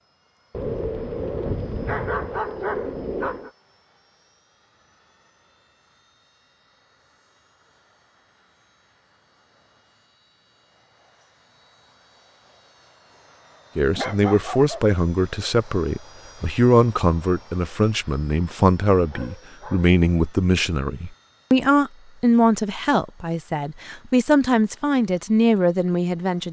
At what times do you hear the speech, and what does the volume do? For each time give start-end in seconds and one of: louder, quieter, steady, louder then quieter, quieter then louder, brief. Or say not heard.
13.8-26.4 steady.